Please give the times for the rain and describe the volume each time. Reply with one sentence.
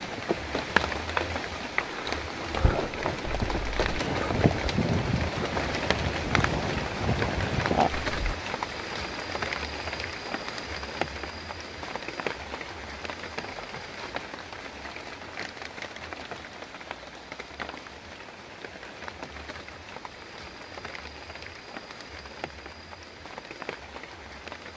You can hear the rain from 0.0 to 24.7 s, getting quieter.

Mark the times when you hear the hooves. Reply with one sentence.
The hooves can be heard from 3.2 to 8.3 s.